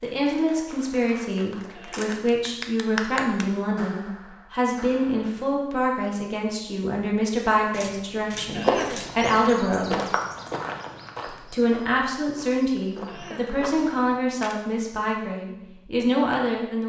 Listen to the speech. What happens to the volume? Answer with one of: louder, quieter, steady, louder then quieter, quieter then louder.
steady.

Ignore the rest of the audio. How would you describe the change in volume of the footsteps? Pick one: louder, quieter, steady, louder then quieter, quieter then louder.
quieter then louder.